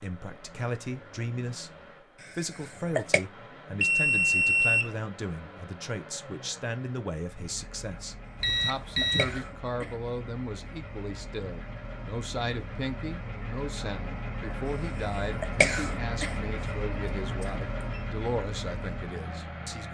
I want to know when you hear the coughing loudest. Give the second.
16 s.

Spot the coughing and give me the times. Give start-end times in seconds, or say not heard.
2.2-3.2, 9.0-9.9, 15.4-16.4.